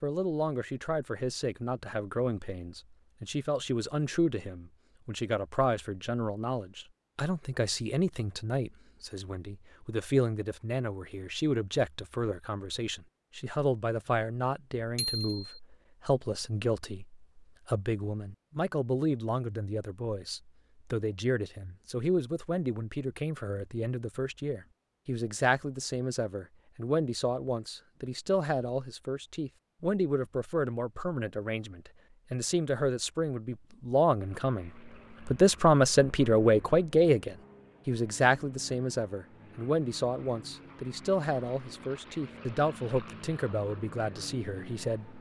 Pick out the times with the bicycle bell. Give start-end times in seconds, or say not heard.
14.9-15.6.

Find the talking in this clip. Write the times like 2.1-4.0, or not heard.
0.0-45.1.